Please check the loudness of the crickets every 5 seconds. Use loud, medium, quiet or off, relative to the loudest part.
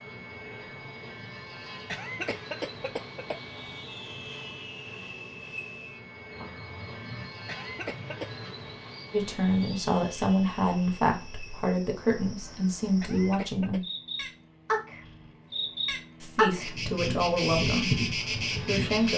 off, quiet, medium, loud.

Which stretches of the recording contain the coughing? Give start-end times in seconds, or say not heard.
1.9-3.4, 7.5-8.3, 13.0-13.8.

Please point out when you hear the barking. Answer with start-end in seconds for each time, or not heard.
not heard.